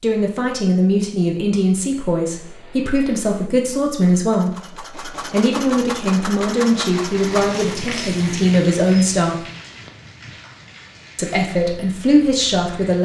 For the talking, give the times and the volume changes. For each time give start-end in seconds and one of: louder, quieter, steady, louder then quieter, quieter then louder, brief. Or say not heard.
0.0-9.4 steady
11.2-13.0 brief.